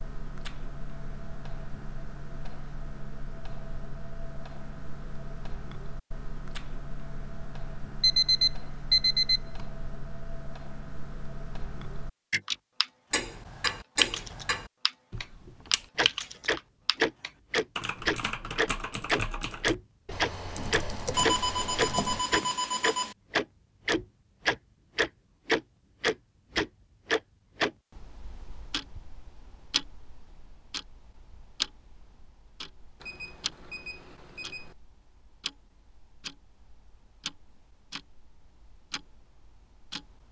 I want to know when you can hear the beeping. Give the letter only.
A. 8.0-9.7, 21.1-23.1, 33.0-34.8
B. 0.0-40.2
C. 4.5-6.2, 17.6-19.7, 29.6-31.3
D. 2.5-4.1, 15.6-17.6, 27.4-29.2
A.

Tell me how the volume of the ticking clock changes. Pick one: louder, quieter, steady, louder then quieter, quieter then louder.
louder then quieter.